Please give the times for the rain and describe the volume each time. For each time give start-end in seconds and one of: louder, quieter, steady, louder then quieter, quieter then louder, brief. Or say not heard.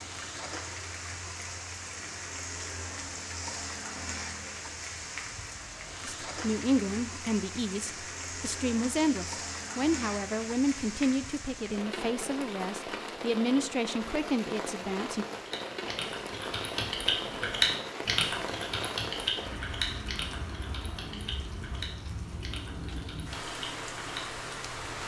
0.0-25.0 steady.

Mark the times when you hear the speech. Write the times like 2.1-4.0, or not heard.
6.0-15.2.